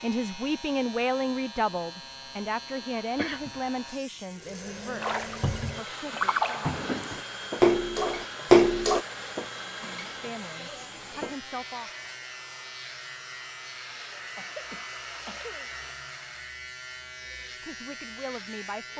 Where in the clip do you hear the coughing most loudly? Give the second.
7 s.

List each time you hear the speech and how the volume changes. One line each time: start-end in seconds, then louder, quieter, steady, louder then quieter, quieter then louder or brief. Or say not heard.
0.0-6.7 quieter
9.7-11.9 brief
17.6-18.9 brief.